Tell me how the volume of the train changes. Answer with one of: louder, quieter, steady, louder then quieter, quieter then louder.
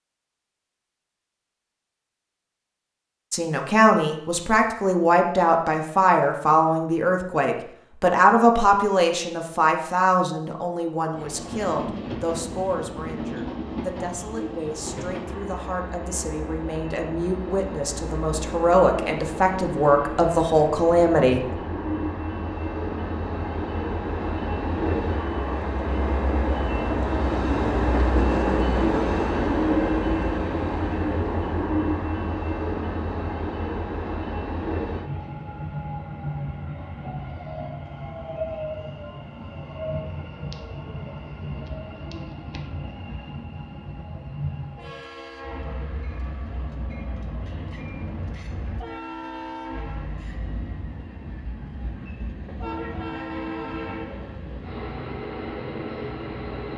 louder then quieter.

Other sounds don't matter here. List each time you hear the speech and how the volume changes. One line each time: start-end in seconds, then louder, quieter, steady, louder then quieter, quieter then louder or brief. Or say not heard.
3.3-21.6 quieter then louder.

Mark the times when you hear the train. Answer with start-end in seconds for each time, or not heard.
11.1-56.7.